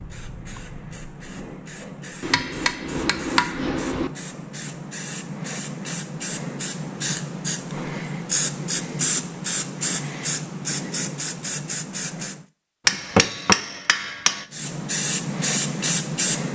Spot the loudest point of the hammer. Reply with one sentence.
The volume of the hammer peaks at 13 seconds.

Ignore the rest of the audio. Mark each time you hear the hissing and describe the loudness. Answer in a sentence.
You can hear the hissing from 0.0 to 12.4 s, getting louder; and briefly from 14.5 to 16.5 s.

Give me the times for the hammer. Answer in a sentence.
The hammer can be heard from 2.2 to 4.1 s and from 12.8 to 14.4 s.